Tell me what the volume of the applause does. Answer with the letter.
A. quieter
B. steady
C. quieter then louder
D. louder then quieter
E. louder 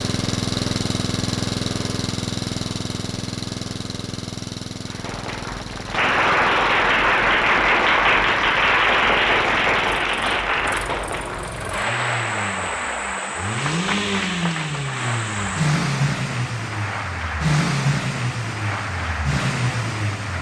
A.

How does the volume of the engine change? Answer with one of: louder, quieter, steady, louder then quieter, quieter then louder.
quieter then louder.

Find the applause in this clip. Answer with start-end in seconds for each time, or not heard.
4.8-20.3.